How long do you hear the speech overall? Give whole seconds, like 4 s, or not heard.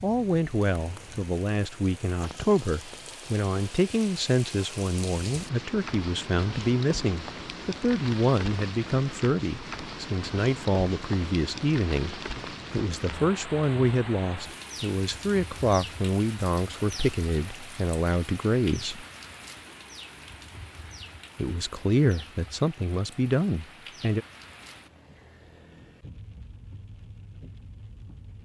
22 s.